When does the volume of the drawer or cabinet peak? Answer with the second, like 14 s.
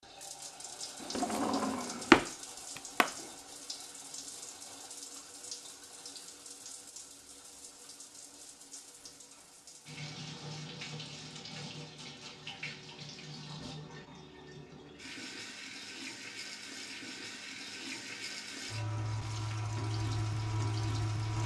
2 s.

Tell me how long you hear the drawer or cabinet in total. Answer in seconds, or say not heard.
2 s.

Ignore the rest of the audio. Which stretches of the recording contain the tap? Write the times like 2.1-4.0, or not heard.
0.0-21.4.